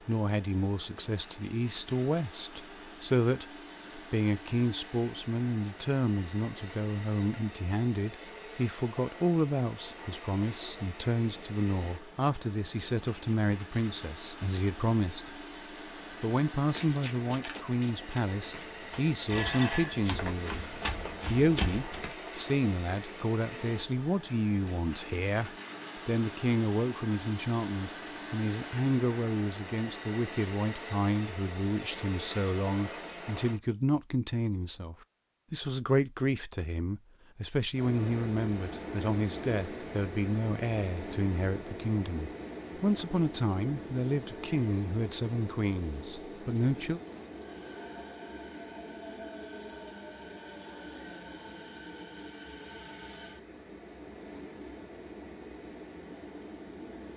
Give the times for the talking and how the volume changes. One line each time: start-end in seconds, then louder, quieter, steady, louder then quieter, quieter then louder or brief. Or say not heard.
0.1-15.3 steady
16.2-47.0 steady.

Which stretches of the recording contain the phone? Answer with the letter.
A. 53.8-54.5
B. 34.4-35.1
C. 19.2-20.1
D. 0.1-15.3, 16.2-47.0
C.